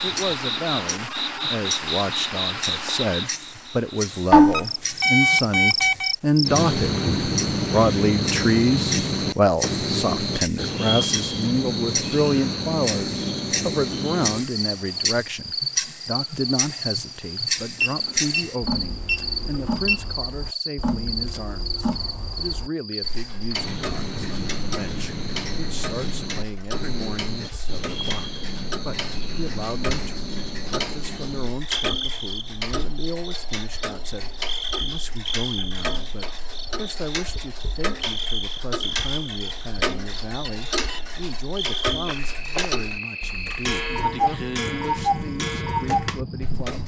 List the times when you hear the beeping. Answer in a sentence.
You can hear the beeping from 4.5 to 6.2 s, from 17.8 to 20.1 s and from 40.5 to 41.1 s.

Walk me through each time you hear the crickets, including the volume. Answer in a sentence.
You can hear the crickets from 0.0 to 46.8 s, getting quieter.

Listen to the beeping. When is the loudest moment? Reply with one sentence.
The loudest moment of the beeping is at 5 seconds.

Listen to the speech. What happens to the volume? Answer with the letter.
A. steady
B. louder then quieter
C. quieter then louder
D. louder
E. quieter
E.